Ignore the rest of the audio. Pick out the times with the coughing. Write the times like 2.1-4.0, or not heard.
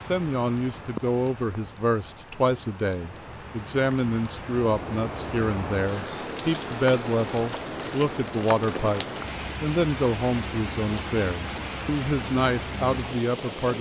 not heard.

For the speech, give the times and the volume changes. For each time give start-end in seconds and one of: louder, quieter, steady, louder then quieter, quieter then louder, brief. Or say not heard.
0.1-13.7 steady.